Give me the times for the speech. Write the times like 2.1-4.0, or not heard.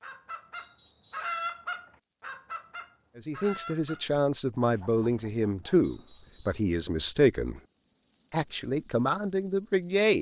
3.1-7.6, 8.3-10.1.